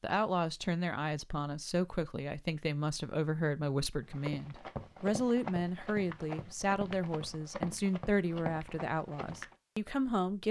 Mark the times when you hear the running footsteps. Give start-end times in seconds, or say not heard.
4.0-9.6.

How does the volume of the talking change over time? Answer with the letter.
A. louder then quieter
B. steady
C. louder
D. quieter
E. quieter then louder
B.